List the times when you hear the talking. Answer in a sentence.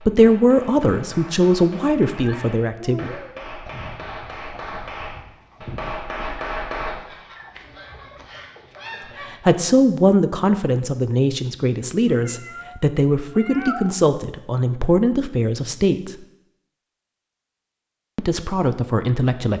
The talking can be heard from 0.0 to 3.1 s, from 9.3 to 16.2 s and from 18.1 to 19.5 s.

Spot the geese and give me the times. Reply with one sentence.
The geese can be heard from 3.6 to 9.4 s.